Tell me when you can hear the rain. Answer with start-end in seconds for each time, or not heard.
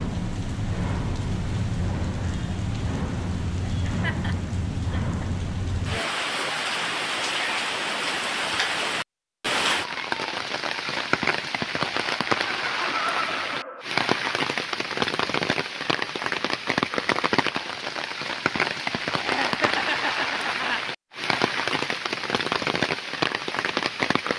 0.0-24.3.